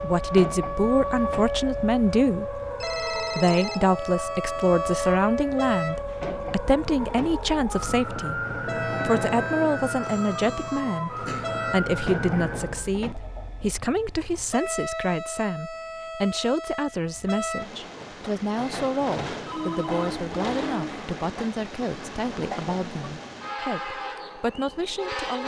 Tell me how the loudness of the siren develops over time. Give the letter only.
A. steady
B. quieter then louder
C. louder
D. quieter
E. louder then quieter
A.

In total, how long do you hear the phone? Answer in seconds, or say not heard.
4 s.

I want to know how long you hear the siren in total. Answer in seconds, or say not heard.
13 s.